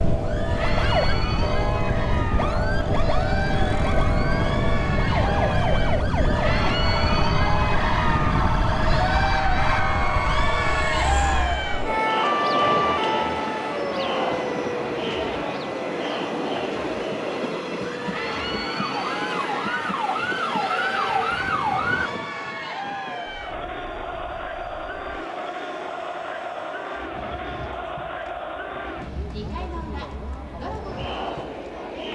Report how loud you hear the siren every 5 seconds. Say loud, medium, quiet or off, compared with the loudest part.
loud, loud, loud, medium, loud, off, off.